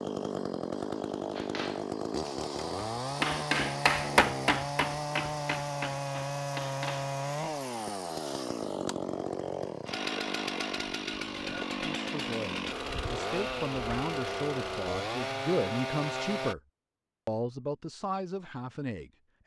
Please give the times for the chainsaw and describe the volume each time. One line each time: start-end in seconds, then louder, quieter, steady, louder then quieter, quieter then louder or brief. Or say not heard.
0.0-16.6 steady.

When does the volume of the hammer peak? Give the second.
4 s.